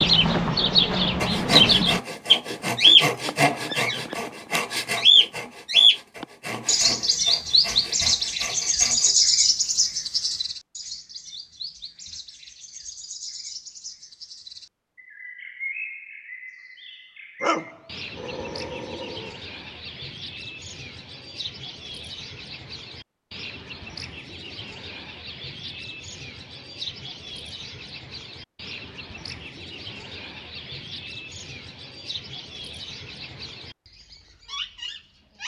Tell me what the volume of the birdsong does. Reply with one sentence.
The volume of the birdsong goes down.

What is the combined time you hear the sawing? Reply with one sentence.
You can hear the sawing for 8 seconds altogether.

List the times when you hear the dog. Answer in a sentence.
The dog can be heard from 17.4 to 19.4 s.